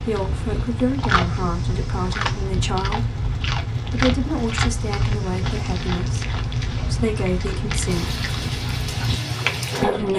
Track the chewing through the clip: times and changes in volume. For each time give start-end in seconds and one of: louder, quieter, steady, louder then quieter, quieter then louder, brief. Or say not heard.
0.0-10.1 steady.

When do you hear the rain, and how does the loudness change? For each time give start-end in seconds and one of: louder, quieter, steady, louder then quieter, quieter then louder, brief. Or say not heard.
0.2-10.1 steady.